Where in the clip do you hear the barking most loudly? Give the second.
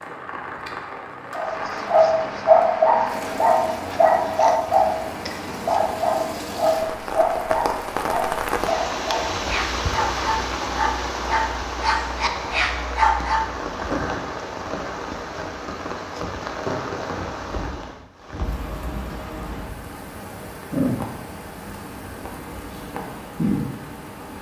3 s.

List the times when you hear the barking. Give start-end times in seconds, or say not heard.
1.3-13.6.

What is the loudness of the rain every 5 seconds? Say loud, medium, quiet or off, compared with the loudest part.
medium, loud, loud, loud, loud.